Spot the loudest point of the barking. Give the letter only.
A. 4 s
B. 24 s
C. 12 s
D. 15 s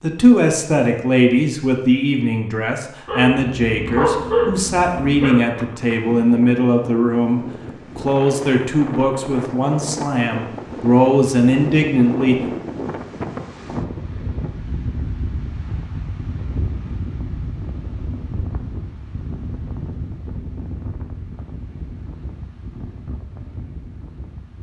A.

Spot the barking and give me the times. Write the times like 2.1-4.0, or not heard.
3.0-5.4.